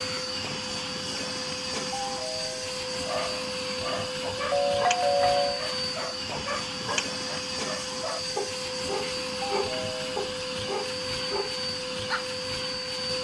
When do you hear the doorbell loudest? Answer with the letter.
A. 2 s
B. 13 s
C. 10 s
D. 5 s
D.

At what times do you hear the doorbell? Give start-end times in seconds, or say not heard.
1.9-2.6, 4.5-5.6, 9.4-10.1.